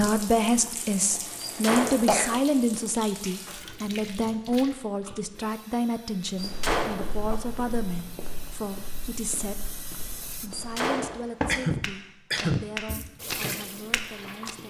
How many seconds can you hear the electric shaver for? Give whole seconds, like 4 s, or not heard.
not heard.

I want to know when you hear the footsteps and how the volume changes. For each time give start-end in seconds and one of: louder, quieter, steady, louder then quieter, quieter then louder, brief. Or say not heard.
6.2-14.5 louder.